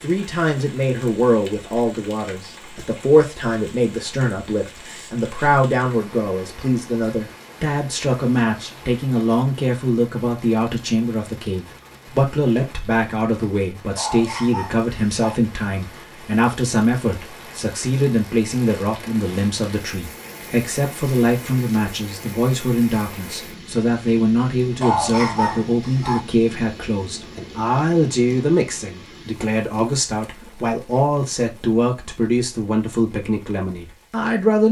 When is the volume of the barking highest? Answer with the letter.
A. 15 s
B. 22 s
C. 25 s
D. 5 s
C.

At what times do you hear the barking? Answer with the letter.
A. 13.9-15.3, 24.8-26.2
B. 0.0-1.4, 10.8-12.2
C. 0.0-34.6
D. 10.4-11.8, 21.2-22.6
A.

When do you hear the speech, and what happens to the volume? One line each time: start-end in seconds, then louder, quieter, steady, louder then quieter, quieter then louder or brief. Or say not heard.
0.0-34.6 steady.